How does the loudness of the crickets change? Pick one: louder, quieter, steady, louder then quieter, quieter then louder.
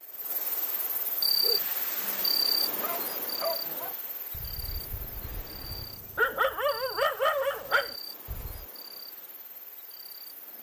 quieter.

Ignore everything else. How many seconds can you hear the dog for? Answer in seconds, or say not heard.
7 s.